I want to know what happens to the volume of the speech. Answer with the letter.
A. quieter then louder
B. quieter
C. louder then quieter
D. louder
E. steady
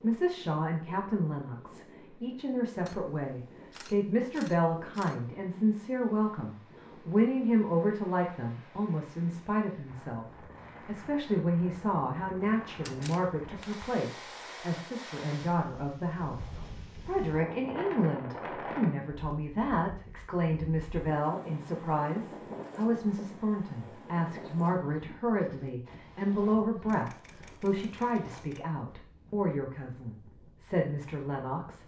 E.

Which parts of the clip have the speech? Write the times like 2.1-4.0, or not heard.
0.0-31.8.